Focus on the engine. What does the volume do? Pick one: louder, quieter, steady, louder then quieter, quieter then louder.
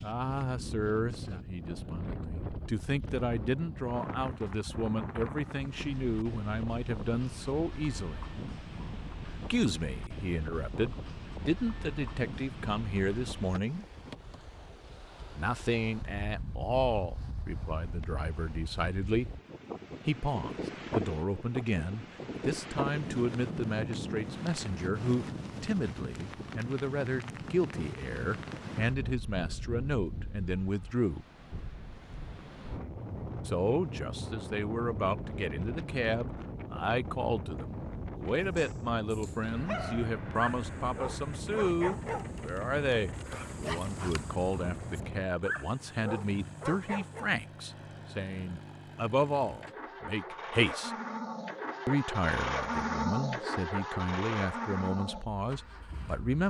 louder.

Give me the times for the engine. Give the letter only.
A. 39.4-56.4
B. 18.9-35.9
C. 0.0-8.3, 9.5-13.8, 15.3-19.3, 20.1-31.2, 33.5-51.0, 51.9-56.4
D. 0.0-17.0
A.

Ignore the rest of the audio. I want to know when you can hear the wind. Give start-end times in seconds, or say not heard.
0.0-45.4.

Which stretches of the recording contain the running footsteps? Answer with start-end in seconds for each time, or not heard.
not heard.